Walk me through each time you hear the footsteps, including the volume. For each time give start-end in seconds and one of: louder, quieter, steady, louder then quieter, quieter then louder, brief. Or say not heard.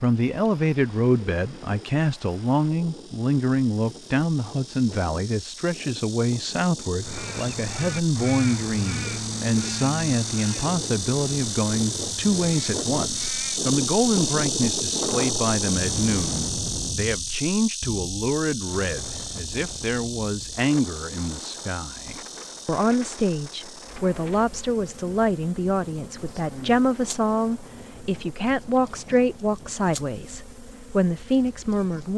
not heard.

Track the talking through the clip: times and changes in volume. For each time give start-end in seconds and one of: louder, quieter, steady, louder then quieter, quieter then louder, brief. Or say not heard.
0.0-32.1 steady.